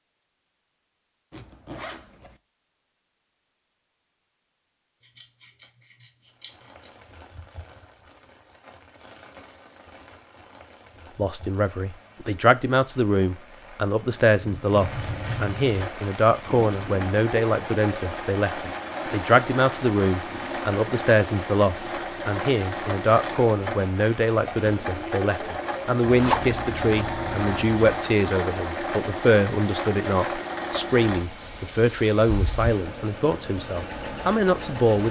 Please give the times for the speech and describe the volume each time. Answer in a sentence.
The speech can be heard from 11.2 to 35.0 s, at a steady volume.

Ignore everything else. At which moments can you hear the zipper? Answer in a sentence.
The zipper can be heard from 1.3 to 2.4 s and from 26.1 to 28.0 s.